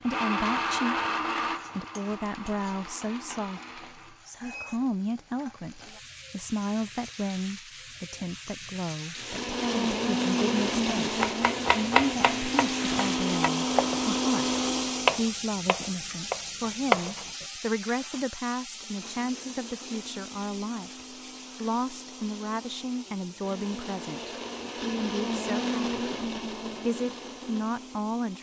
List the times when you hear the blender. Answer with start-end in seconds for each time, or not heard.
0.0-4.2, 9.2-15.2, 18.7-28.3.